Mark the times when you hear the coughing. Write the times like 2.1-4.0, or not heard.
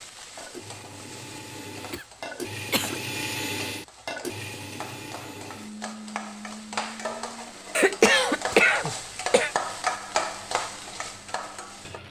1.9-3.0, 7.8-9.6.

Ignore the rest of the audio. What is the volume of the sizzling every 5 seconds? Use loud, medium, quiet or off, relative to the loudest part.
quiet, loud, loud.